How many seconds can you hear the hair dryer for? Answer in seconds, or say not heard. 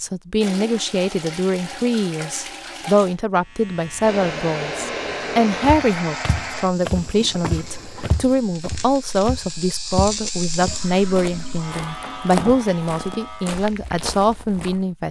3 s.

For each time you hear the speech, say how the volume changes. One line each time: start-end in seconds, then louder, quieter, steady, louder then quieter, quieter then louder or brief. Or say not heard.
0.0-15.0 steady.